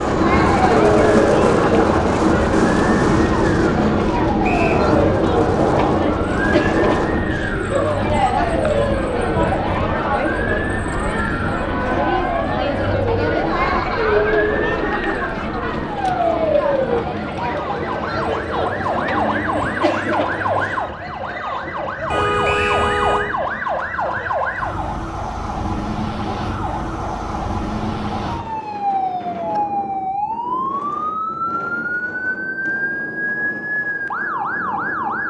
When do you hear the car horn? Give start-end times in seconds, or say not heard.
22.1-23.2.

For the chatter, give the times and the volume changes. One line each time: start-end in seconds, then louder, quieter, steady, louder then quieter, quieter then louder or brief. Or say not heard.
0.0-20.9 steady.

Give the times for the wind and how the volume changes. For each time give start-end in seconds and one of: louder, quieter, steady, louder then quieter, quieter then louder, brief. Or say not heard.
0.0-35.2 quieter.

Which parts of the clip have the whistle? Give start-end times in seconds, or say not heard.
4.4-4.8, 22.4-22.9.